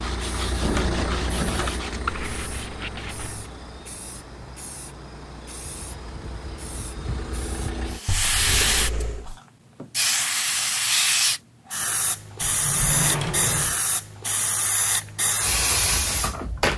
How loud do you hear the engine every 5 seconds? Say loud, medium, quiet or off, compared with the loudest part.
loud, loud, off, off.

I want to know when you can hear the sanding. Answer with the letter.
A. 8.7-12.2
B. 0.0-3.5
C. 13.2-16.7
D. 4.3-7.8
B.